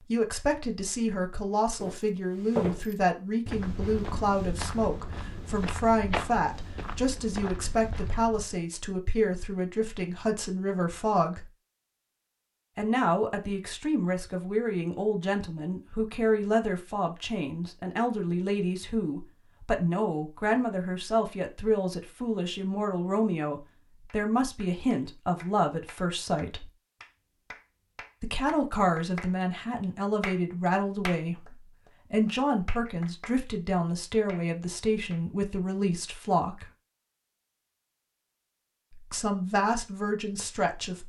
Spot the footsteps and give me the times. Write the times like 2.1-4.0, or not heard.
1.8-8.6.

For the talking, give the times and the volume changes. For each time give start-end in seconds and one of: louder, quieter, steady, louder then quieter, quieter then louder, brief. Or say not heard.
0.0-11.4 steady
12.8-26.7 steady
28.2-36.6 steady
38.9-41.0 brief.